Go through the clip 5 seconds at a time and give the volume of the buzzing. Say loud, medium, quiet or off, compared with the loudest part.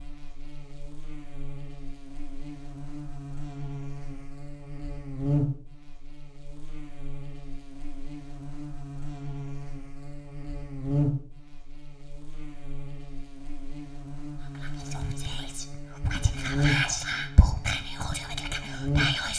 medium, loud, loud, loud.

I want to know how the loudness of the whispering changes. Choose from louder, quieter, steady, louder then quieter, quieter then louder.
louder then quieter.